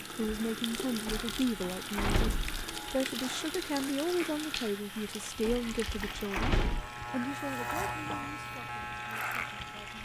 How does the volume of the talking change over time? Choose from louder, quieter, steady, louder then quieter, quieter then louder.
quieter.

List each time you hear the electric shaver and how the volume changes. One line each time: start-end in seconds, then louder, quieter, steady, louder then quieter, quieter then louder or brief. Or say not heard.
0.0-10.0 louder.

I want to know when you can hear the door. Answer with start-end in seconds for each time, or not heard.
1.1-2.6, 5.5-6.8.